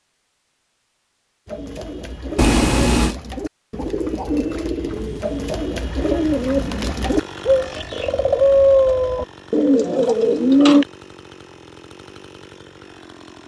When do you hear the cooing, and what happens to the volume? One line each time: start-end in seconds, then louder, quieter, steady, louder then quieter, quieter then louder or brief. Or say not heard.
1.4-10.8 louder.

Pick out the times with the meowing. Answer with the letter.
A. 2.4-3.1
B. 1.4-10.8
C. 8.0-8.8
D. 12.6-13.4
A.